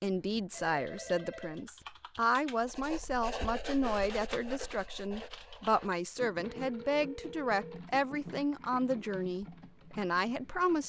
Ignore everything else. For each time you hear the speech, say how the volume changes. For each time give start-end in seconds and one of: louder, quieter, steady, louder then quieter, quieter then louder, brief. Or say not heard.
0.0-10.8 steady.